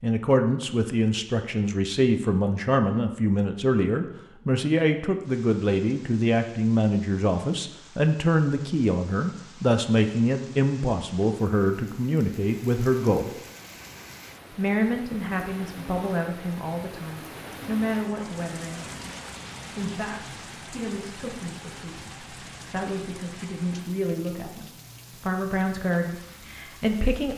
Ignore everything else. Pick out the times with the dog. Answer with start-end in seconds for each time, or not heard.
not heard.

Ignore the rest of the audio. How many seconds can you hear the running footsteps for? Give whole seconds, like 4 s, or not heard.
not heard.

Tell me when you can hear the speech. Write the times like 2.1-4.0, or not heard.
0.0-13.3, 14.5-18.9, 19.7-27.3.